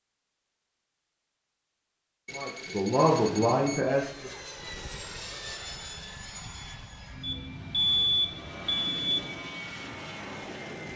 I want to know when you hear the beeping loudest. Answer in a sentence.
The loudest moment of the beeping is at 8 seconds.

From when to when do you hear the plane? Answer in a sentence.
The plane can be heard from 3.0 to 10.9 s.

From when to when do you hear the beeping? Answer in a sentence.
You can hear the beeping from 2.2 to 3.9 s and from 7.2 to 9.2 s.